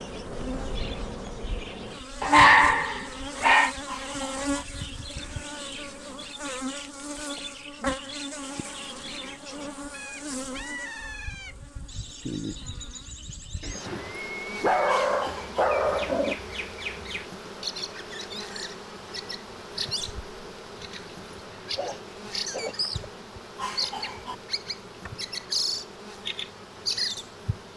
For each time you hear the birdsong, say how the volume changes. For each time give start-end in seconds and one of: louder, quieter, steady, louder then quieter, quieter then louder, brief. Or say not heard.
0.0-27.7 louder.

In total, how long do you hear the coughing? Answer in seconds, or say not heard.
2 s.